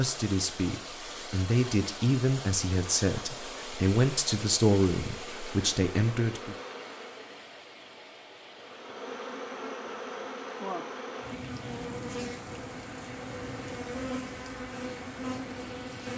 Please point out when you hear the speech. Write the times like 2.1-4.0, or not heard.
0.0-6.5.